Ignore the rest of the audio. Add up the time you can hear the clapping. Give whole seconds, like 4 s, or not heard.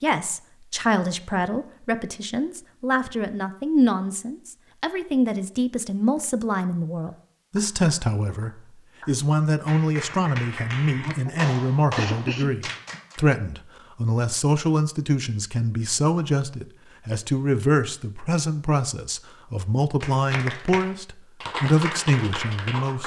9 s.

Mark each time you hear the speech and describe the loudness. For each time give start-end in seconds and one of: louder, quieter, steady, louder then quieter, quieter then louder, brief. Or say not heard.
0.0-23.0 steady.